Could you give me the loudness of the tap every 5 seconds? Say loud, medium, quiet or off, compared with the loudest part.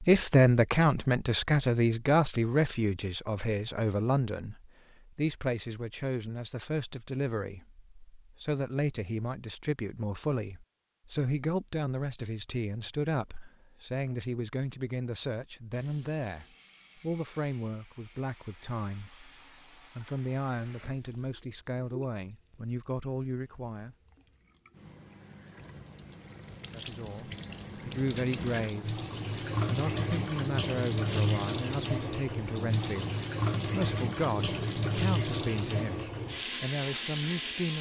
off, off, off, quiet, quiet, medium, loud, loud.